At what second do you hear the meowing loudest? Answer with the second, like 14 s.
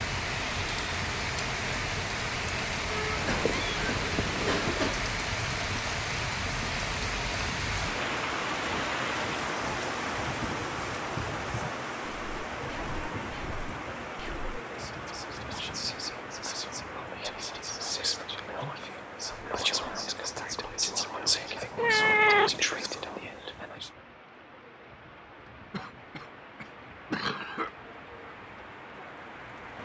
22 s.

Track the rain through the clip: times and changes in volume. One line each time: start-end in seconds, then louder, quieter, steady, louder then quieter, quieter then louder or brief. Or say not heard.
0.0-29.8 quieter.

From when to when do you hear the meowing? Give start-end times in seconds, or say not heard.
3.1-5.0, 21.8-22.6.